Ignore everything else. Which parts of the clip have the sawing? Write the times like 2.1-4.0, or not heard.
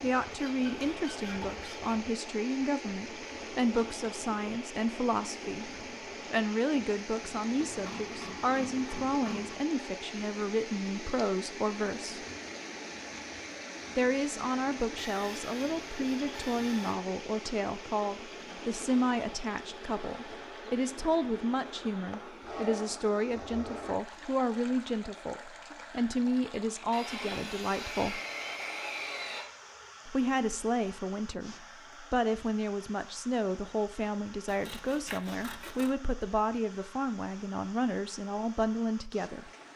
0.3-1.9, 7.6-9.7, 14.9-16.9, 22.4-23.9, 26.9-29.5, 34.5-35.9.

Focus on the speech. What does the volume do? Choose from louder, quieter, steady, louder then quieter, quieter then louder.
steady.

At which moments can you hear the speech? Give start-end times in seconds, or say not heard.
0.0-5.7, 6.3-12.2, 13.9-28.2, 30.1-39.5.